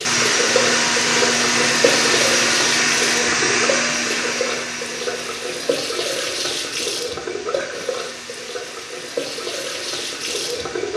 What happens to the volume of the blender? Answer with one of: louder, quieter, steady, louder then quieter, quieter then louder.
quieter.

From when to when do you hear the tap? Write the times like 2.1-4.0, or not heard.
0.0-10.9.